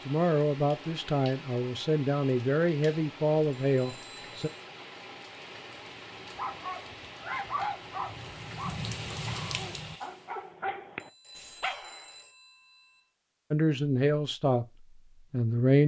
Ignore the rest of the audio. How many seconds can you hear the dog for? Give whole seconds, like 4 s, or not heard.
6 s.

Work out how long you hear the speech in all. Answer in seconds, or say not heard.
7 s.